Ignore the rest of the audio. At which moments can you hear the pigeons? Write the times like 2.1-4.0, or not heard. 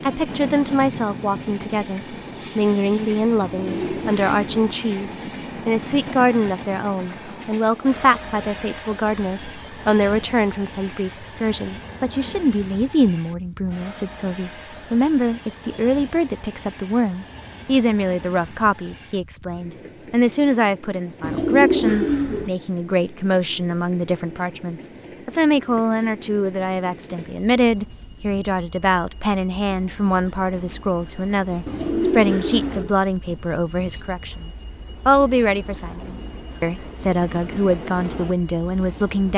3.4-4.5, 21.2-22.5, 31.6-33.0.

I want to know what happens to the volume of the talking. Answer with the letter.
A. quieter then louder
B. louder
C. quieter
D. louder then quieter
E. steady
E.